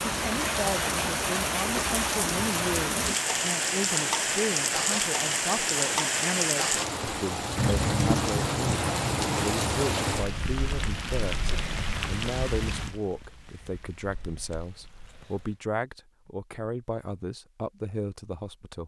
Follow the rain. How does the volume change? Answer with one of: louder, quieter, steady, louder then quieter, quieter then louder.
quieter.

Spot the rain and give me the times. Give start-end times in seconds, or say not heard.
0.0-15.6.